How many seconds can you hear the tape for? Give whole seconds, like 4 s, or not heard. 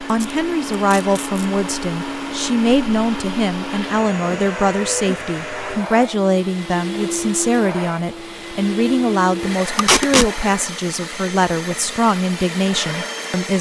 2 s.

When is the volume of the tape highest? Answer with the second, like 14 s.
10 s.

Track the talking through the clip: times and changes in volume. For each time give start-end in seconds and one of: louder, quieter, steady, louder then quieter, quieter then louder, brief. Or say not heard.
0.0-13.5 steady.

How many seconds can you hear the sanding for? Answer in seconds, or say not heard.
not heard.